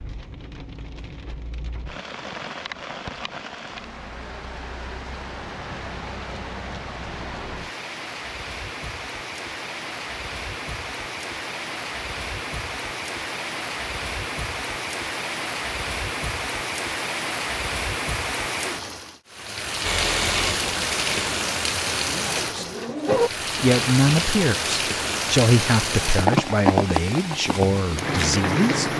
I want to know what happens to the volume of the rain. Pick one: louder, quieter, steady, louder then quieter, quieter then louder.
louder.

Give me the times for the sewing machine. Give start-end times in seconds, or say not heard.
19.8-23.3.